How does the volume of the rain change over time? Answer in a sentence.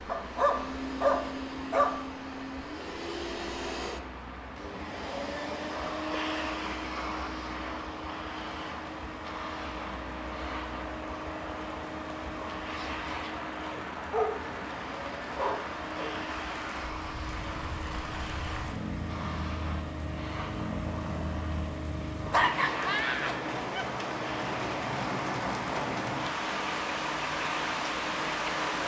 The volume of the rain goes up.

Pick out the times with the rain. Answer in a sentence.
The rain can be heard from 0.0 to 28.8 s.